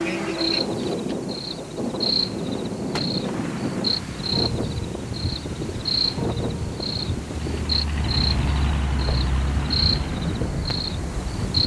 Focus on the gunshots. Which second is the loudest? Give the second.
3 s.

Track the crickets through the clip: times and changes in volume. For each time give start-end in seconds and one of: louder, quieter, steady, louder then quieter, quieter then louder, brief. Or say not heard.
0.0-11.6 steady.